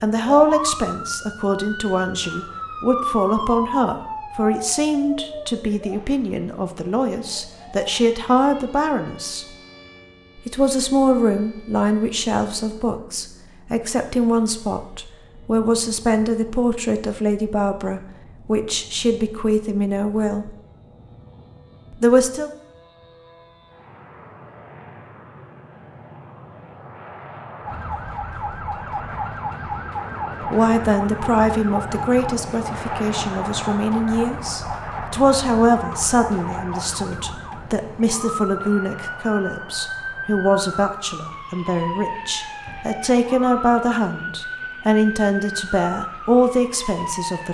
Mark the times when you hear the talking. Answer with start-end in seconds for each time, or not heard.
0.0-9.4, 10.4-20.5, 22.0-22.5, 30.5-47.4.